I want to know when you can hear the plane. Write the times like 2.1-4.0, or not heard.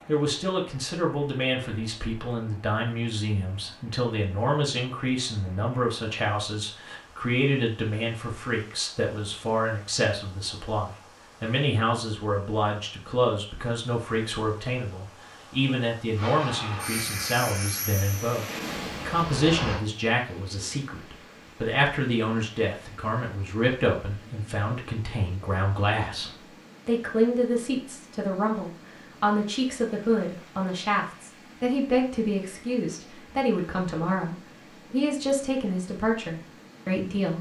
16.1-19.9.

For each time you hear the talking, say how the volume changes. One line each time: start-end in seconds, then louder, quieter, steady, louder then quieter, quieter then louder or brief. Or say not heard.
0.1-37.3 steady.